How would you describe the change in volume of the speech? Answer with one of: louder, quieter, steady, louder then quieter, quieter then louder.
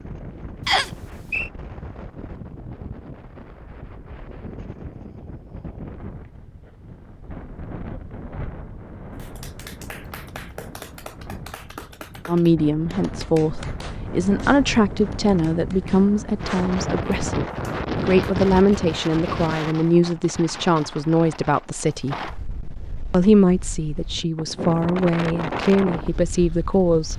steady.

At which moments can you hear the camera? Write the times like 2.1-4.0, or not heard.
not heard.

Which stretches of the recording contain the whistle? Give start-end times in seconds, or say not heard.
0.7-1.5.